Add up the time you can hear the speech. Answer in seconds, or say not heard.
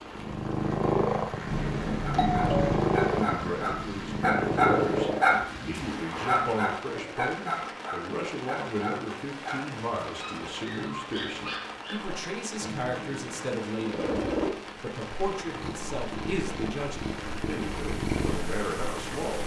16 s.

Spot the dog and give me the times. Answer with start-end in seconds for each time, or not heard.
2.0-13.5.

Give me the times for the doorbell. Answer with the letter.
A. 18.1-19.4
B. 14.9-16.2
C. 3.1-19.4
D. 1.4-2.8
D.